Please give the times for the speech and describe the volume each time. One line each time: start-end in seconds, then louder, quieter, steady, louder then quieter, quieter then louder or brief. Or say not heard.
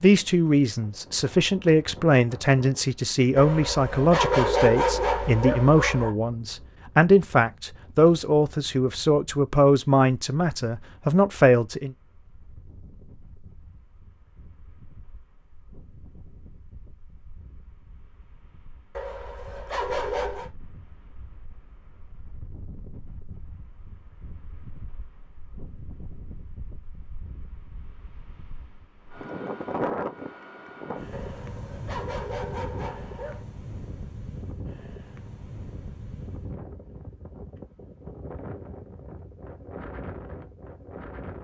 0.0-11.9 steady.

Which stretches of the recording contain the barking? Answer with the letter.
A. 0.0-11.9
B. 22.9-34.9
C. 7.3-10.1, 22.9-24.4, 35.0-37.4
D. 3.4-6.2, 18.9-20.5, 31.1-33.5
D.